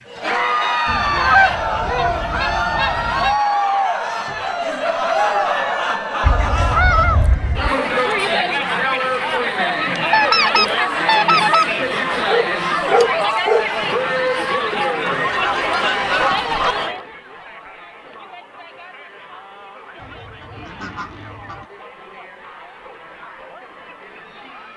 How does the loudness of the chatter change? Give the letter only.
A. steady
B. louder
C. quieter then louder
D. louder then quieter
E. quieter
E.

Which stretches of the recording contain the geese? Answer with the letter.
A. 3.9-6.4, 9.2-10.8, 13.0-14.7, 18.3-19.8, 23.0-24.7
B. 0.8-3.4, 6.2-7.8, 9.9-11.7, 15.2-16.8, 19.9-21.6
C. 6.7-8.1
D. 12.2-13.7
B.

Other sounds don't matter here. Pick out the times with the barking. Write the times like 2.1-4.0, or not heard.
12.2-13.7.